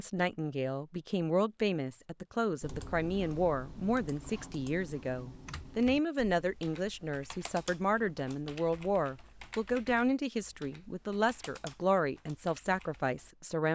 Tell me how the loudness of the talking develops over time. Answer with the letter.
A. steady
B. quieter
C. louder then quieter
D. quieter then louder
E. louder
A.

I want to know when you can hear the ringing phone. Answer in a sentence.
The ringing phone can't be heard in this clip.